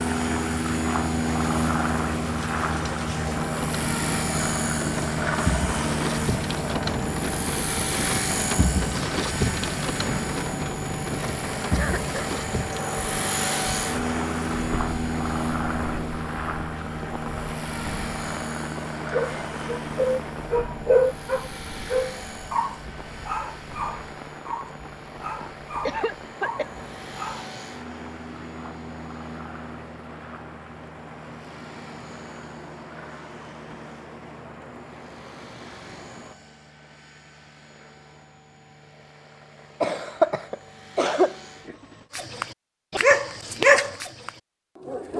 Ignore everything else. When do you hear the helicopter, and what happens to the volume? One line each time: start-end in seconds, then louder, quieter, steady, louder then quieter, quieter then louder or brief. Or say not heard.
0.0-42.1 quieter.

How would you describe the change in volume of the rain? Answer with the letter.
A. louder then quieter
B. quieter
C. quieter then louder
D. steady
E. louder
B.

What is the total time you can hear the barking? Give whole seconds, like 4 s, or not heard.
11 s.